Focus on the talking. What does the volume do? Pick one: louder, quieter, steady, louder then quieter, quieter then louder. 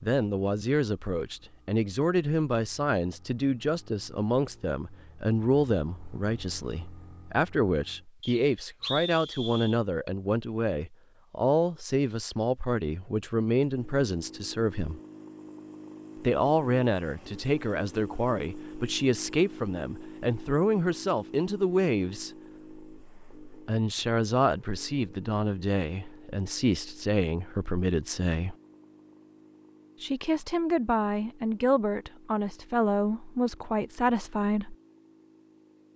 steady.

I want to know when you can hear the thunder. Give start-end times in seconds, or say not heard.
not heard.